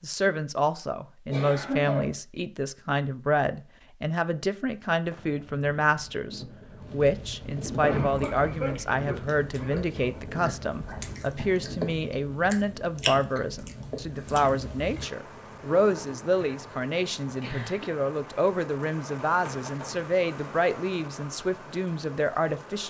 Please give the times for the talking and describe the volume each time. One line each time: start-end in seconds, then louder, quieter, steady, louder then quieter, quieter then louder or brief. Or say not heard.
0.0-22.8 steady.